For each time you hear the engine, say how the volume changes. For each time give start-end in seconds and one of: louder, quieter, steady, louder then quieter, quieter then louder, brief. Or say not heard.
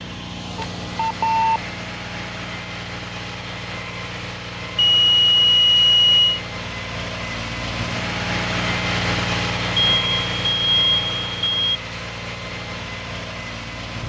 0.0-14.0 louder then quieter.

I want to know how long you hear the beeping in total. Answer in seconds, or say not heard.
5 s.